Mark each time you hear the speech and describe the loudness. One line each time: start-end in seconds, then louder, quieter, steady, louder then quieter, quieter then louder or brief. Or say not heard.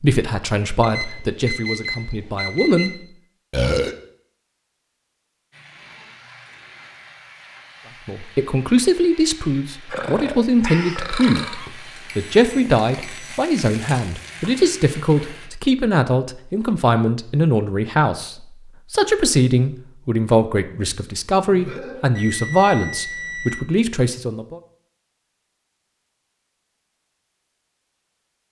0.0-2.9 brief
8.1-24.6 steady.